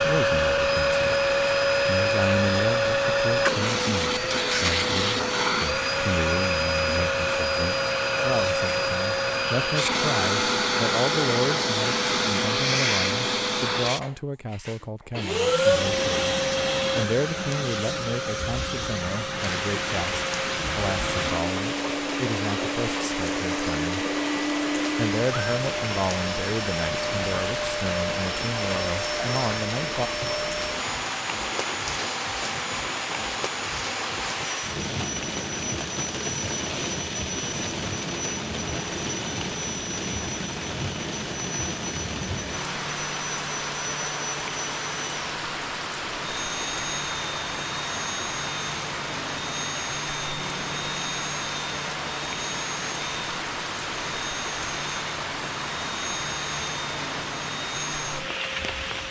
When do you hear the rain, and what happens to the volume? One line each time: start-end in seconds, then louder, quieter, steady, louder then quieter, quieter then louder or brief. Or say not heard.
19.4-59.0 steady.